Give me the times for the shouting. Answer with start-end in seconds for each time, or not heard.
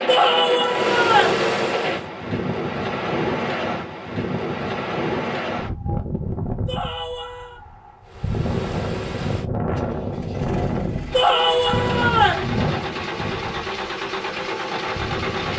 0.1-1.4, 6.7-7.6, 11.1-12.4.